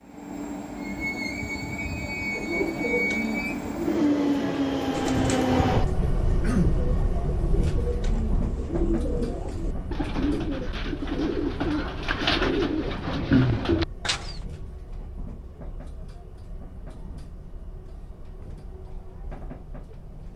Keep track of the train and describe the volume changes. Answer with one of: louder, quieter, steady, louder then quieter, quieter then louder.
quieter.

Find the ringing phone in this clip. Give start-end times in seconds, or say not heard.
not heard.